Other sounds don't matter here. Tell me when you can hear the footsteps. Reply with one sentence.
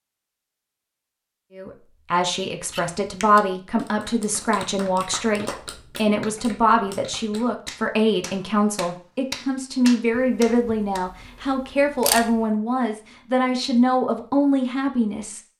The footsteps can't be heard in this clip.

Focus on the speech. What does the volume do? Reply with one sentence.
The loudness of the speech stays about the same.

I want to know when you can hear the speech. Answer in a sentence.
You can hear the speech from 1.6 to 15.4 s.